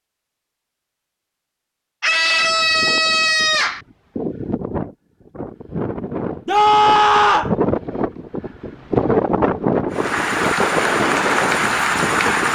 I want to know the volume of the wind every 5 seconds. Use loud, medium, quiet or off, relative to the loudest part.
medium, loud, loud.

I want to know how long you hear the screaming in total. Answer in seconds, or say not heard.
3 s.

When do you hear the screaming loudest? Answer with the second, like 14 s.
7 s.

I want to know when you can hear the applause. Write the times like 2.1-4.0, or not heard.
9.9-12.4.